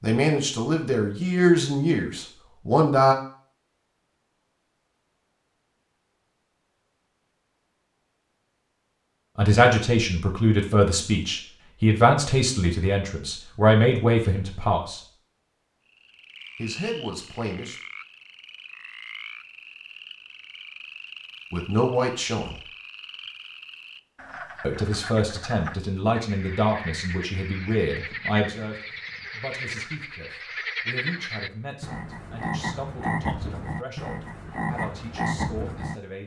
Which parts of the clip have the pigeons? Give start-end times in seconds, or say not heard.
not heard.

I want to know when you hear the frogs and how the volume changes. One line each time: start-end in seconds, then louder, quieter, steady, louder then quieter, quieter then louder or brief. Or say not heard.
15.8-36.0 louder.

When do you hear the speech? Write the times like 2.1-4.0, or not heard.
0.0-3.1, 9.3-15.0, 16.6-17.8, 21.5-22.6, 24.6-36.2.